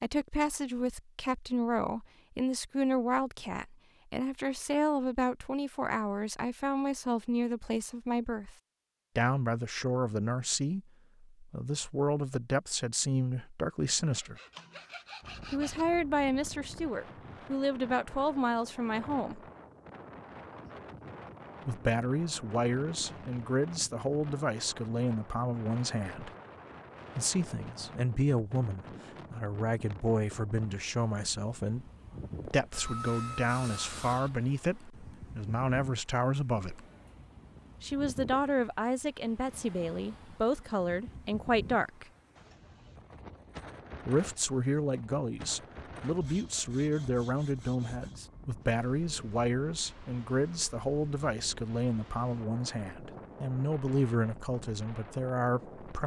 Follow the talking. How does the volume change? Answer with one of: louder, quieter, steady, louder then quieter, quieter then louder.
steady.